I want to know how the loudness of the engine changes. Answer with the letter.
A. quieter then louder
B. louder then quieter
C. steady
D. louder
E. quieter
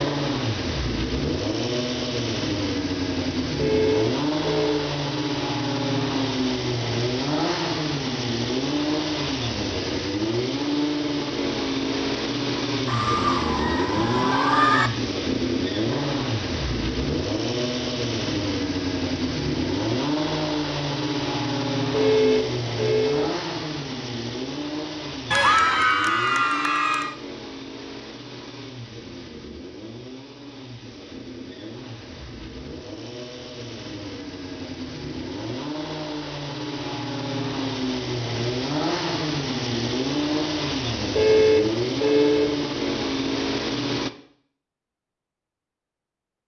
A.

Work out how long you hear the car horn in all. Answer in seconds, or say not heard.
4 s.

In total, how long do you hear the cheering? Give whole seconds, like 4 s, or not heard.
4 s.